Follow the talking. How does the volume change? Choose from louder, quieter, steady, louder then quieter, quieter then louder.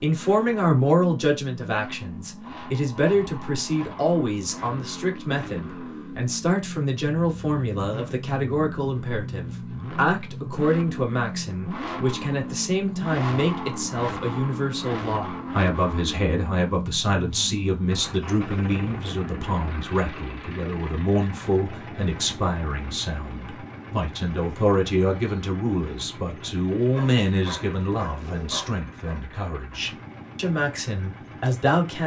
steady.